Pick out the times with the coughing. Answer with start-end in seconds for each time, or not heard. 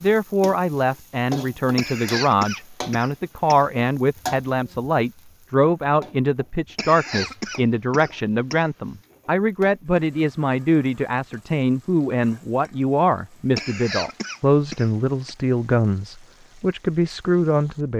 1.8-3.6, 6.8-8.7, 13.6-15.3.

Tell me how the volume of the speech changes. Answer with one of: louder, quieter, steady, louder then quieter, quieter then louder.
steady.